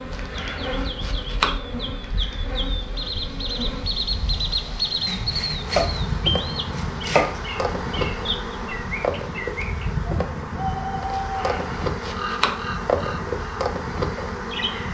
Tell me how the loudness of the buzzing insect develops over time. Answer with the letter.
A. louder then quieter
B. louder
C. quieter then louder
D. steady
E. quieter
B.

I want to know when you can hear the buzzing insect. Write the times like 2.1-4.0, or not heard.
0.0-14.8.